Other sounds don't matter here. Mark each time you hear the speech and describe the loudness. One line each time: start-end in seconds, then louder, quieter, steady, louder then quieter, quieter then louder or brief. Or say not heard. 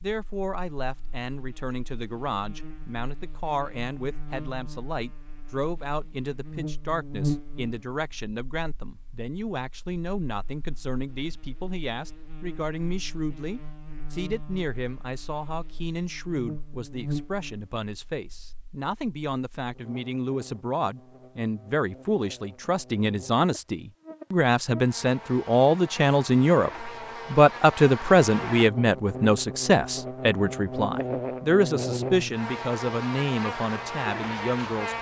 0.0-34.9 louder.